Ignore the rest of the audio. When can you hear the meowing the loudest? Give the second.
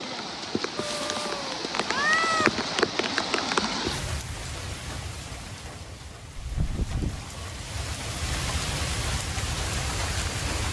2 s.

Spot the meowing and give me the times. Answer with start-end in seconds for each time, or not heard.
0.8-2.5, 6.3-7.2.